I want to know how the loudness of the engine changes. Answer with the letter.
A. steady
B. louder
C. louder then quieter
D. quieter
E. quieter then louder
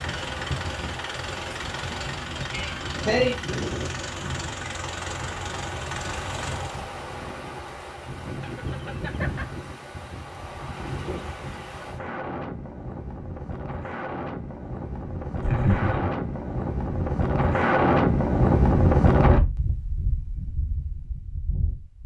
A.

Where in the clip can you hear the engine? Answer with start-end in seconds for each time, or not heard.
0.0-6.8.